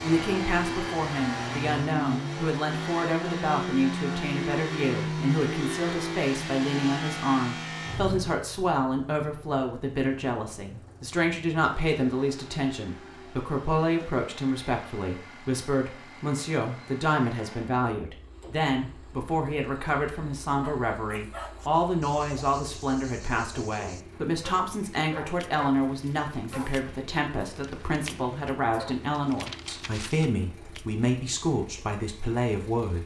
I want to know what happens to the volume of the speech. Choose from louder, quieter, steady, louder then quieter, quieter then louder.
steady.